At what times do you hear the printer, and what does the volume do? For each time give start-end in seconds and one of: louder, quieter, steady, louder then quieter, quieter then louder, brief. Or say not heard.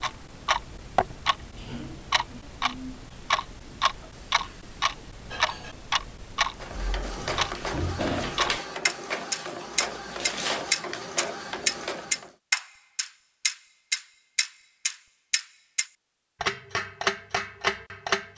6.5-12.3 steady.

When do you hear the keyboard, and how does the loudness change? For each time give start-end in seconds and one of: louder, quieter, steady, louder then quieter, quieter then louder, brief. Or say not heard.
not heard.